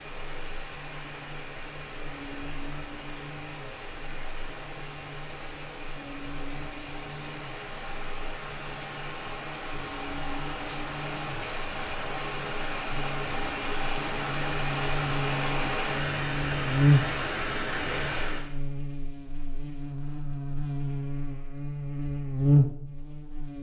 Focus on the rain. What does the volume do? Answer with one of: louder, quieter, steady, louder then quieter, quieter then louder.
louder.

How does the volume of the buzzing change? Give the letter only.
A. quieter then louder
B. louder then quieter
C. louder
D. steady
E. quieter
C.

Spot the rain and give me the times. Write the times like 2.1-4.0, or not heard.
0.0-18.5.